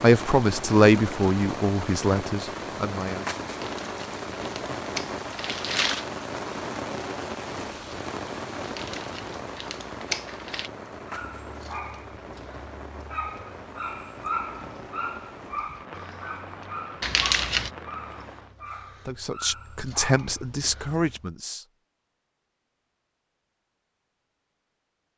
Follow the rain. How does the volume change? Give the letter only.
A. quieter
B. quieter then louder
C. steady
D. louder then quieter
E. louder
A.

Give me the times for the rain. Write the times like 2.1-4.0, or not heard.
0.0-18.6.